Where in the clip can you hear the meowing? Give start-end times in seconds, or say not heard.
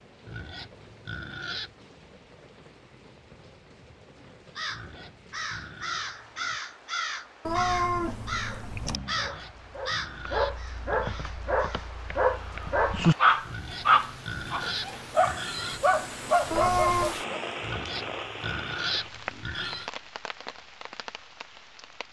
7.5-9.0, 16.5-17.1.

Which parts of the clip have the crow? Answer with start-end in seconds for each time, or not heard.
4.5-11.9.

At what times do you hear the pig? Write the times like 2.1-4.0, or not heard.
0.2-1.8, 4.7-6.6, 9.1-11.2, 13.4-15.8, 17.6-19.9.